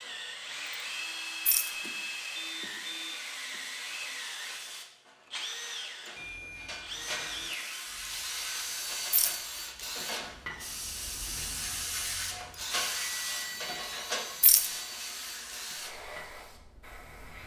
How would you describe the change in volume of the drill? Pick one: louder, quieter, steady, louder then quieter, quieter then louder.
quieter.